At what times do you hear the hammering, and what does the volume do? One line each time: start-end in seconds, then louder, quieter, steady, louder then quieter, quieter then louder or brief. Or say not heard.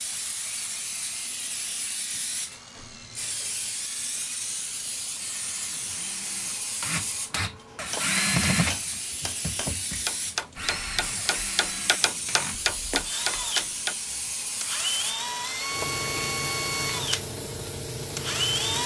7.7-13.9 louder.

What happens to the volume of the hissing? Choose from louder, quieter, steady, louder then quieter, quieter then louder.
steady.